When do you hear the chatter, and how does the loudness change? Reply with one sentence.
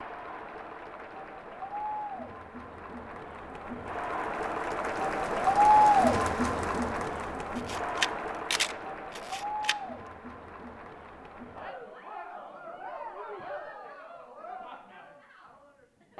The chatter can be heard from 0.0 to 16.1 s, getting louder then quieter.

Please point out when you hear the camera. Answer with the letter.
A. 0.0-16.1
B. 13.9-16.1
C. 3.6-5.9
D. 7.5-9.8
D.